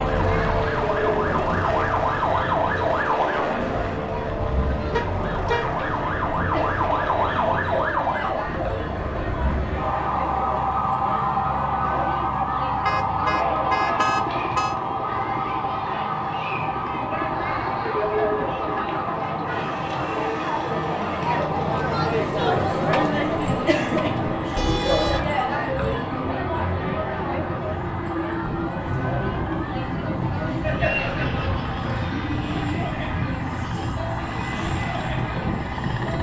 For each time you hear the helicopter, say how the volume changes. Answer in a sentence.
You can hear the helicopter from 0.0 to 36.1 s, getting quieter then louder.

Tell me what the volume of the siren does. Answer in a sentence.
The volume of the siren goes down.